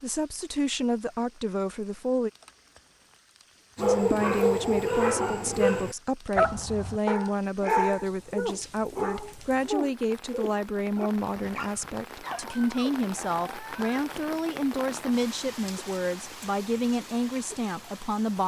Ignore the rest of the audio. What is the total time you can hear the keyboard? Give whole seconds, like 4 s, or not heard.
not heard.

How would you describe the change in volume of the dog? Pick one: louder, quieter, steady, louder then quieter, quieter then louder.
quieter.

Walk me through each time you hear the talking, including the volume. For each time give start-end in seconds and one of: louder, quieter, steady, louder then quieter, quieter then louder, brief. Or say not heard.
0.0-2.3 brief
3.8-18.4 steady.